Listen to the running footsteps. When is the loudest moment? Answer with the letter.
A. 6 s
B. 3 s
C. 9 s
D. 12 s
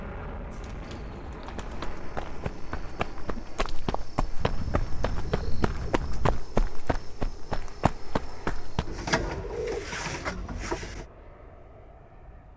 A.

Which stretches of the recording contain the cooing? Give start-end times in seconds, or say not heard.
0.5-1.9, 4.3-6.4, 8.8-11.1.